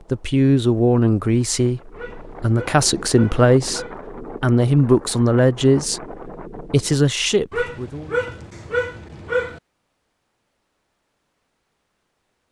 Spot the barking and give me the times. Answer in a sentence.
The barking can be heard from 1.9 to 4.0 s and from 7.5 to 9.6 s.